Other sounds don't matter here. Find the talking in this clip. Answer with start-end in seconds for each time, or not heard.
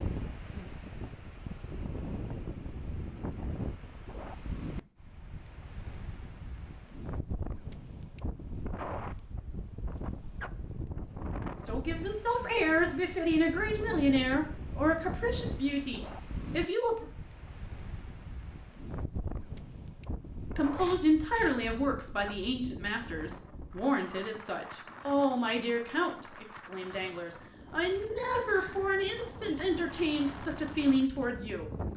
11.7-17.1, 20.6-31.6.